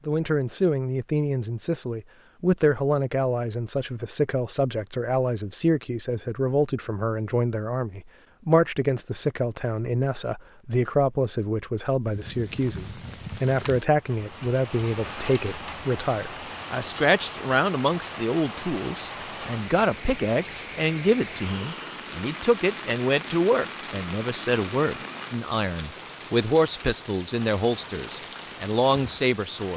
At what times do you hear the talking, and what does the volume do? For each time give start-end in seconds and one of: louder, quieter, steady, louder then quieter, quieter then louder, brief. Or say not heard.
0.1-29.7 steady.